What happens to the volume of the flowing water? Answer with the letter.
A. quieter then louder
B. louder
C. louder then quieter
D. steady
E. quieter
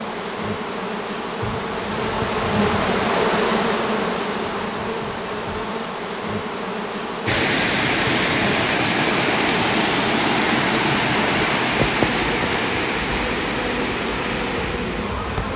E.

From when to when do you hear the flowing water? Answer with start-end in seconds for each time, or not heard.
7.2-15.5.